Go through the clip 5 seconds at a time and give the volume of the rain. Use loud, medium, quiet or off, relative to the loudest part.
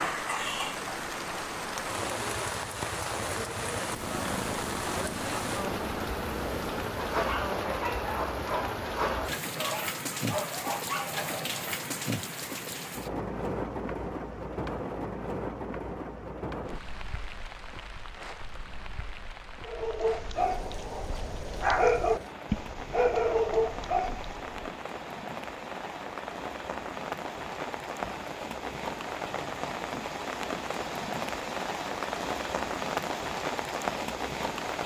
loud, loud, loud, medium, medium, loud, loud.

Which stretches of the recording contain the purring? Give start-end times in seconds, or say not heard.
3.9-7.2.